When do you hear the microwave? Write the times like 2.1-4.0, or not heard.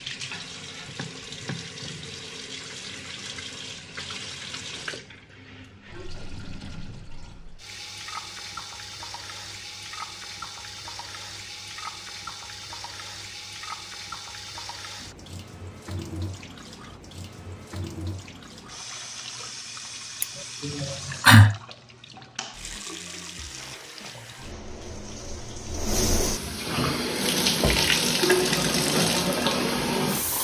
not heard.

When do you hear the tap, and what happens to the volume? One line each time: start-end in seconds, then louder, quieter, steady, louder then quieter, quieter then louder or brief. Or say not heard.
0.0-30.4 louder.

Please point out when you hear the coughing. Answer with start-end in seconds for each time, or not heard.
20.2-21.6.